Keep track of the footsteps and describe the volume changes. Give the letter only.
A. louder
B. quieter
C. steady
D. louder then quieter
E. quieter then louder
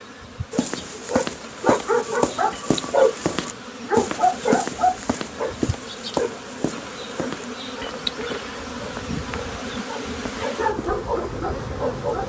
B.